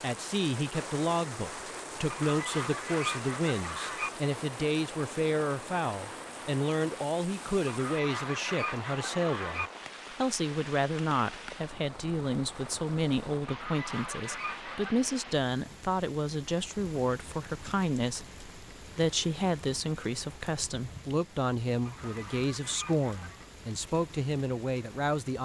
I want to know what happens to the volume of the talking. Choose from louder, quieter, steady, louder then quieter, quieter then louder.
steady.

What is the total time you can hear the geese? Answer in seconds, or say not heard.
7 s.